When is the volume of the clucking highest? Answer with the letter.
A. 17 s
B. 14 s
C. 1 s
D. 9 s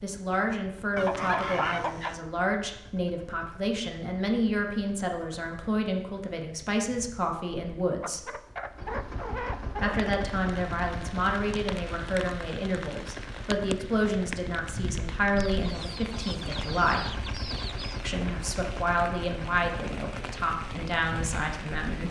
C.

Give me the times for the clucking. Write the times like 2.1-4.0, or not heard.
0.9-2.2, 8.0-9.9, 15.3-18.1.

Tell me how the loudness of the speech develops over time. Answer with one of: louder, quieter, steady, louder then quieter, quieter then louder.
steady.